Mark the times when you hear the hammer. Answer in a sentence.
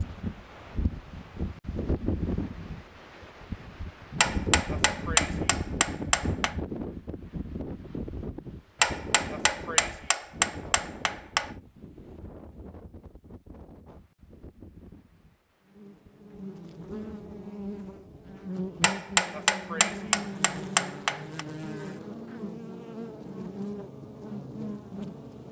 The hammer can be heard from 4.2 to 6.5 s, from 8.8 to 11.5 s and from 18.8 to 21.4 s.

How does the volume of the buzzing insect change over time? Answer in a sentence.
The volume of the buzzing insect stays about the same.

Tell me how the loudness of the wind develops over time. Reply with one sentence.
The volume of the wind goes down.